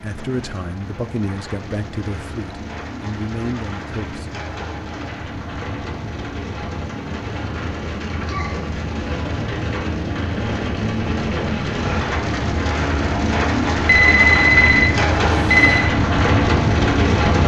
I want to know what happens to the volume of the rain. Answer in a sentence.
The volume of the rain goes up.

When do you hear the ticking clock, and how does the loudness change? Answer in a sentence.
You can't hear the ticking clock here.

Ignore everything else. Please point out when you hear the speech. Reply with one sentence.
You can hear the speech from 0.0 to 4.3 s.